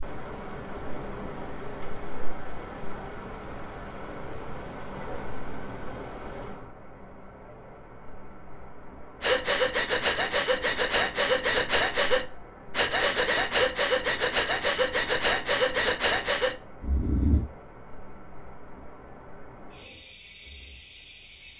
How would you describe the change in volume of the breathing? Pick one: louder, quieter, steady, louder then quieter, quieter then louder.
steady.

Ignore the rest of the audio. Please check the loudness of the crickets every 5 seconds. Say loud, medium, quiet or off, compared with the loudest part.
loud, medium, quiet, quiet, quiet.